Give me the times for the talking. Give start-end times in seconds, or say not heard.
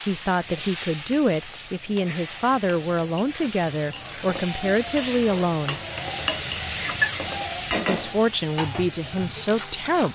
0.0-5.8, 7.8-10.0.